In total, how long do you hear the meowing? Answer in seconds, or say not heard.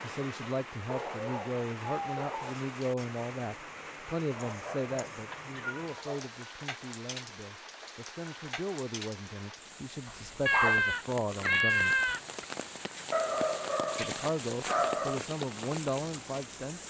3 s.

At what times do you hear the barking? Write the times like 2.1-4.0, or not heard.
0.8-2.6, 4.3-6.3, 10.1-10.8, 13.1-15.2.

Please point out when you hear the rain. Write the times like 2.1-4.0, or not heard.
0.0-16.8.